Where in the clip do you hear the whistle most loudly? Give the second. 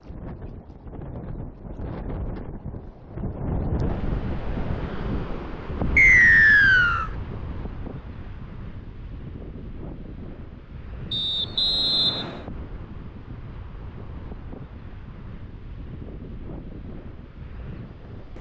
6 s.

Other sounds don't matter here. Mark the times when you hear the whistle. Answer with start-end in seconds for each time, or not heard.
6.0-7.1, 11.1-12.4.